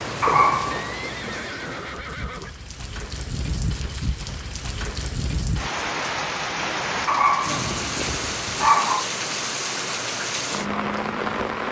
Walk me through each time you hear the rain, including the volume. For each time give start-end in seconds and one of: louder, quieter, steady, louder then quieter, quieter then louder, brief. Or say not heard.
0.0-11.6 louder.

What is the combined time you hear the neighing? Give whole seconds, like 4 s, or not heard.
3 s.